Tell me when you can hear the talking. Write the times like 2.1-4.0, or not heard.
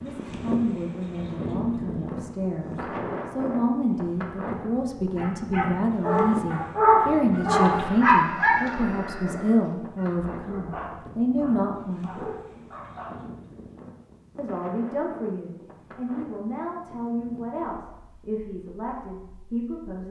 0.0-12.1, 14.3-20.0.